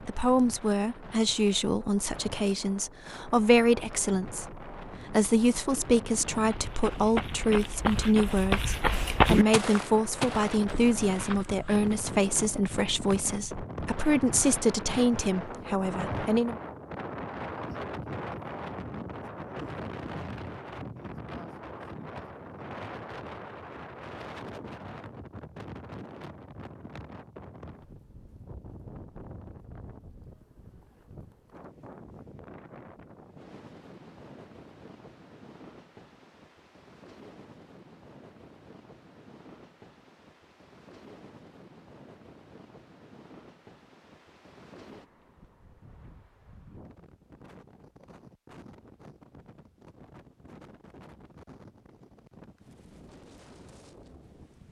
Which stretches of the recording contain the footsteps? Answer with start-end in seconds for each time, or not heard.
6.3-11.9.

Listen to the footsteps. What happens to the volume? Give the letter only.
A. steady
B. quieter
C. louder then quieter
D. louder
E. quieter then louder
C.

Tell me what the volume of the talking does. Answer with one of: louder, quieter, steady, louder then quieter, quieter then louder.
steady.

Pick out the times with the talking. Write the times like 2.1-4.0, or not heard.
0.0-16.6.